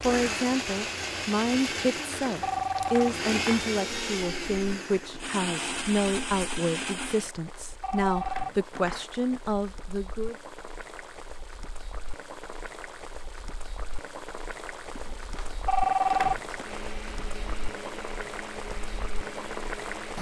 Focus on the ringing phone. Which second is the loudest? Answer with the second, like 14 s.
16 s.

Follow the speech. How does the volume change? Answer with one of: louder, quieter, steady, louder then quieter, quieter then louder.
steady.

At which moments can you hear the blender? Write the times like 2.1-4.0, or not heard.
0.0-7.3, 16.4-20.1.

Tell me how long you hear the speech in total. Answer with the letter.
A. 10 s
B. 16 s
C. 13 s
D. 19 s
A.